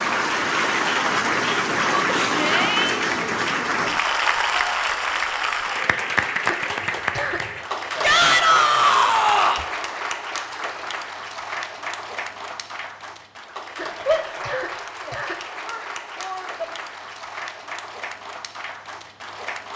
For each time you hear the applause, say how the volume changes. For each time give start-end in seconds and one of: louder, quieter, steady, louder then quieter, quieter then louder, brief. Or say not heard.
0.0-19.7 quieter.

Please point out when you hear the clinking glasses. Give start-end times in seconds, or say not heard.
not heard.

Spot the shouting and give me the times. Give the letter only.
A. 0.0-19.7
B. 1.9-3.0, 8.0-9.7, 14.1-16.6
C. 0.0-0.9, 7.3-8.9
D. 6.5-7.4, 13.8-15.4
B.